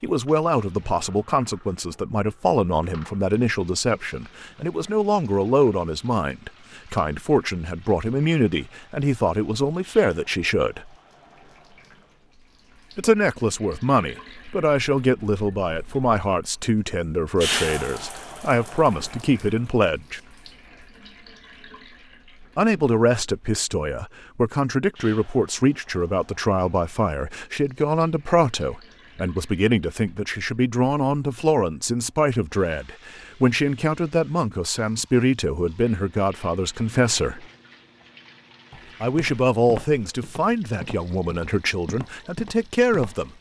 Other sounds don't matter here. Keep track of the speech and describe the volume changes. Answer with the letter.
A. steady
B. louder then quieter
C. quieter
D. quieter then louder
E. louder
A.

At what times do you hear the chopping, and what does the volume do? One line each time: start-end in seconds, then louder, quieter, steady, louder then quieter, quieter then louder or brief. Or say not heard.
not heard.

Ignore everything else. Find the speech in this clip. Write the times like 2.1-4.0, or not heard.
0.0-10.9, 12.9-20.2, 22.6-37.5, 39.0-43.3.